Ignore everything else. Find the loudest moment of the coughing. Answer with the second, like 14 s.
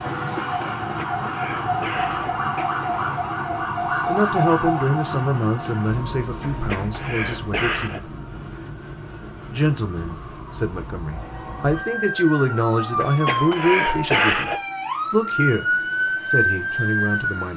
14 s.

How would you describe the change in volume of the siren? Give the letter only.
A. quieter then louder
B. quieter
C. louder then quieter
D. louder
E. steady
A.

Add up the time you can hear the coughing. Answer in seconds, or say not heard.
5 s.